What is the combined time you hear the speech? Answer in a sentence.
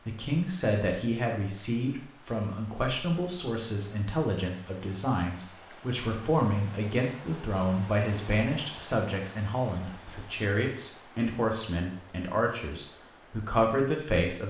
You can hear the speech for 14 seconds altogether.